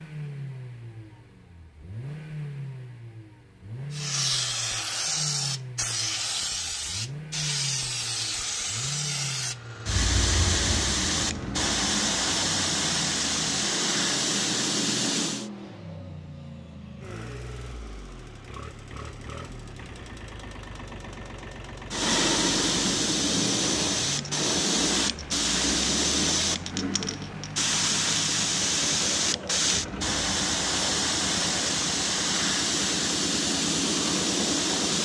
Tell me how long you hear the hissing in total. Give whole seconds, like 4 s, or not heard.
25 s.